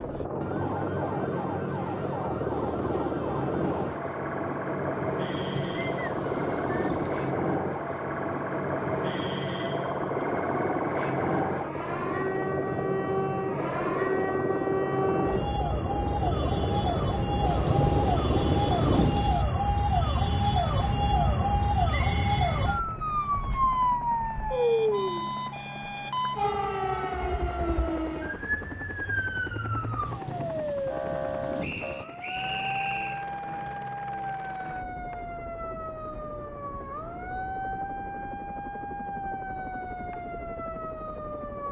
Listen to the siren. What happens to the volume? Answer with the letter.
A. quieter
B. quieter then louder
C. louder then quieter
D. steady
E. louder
C.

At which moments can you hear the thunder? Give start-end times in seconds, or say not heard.
5.3-7.3, 17.4-19.4, 30.1-32.0.